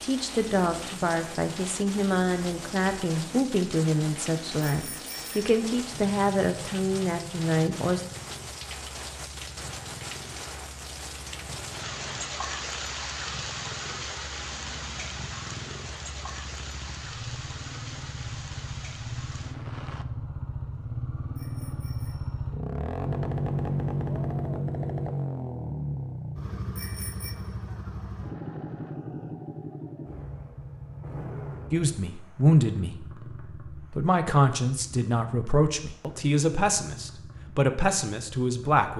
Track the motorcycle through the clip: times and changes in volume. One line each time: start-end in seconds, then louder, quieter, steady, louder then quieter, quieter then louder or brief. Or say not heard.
0.1-38.9 louder then quieter.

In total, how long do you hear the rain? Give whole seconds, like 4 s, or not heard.
20 s.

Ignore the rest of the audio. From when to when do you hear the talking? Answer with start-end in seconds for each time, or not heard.
0.0-8.0, 31.7-38.9.